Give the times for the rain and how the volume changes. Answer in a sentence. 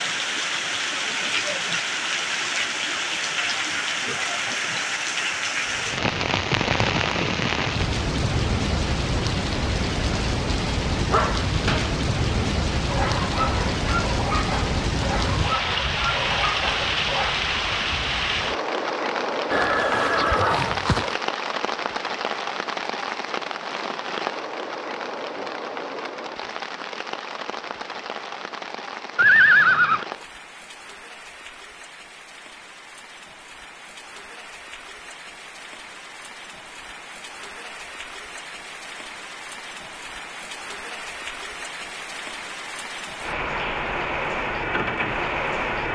The rain can be heard from 0.0 to 45.9 s, getting quieter then louder.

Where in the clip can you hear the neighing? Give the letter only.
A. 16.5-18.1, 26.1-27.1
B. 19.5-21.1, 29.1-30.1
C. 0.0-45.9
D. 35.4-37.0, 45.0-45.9
B.